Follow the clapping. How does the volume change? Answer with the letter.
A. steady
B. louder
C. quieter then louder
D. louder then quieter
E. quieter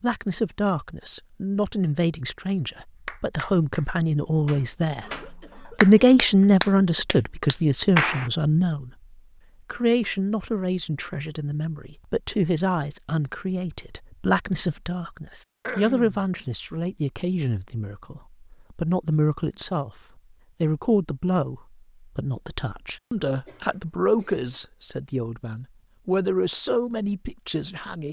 D.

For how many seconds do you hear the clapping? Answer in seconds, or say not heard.
5 s.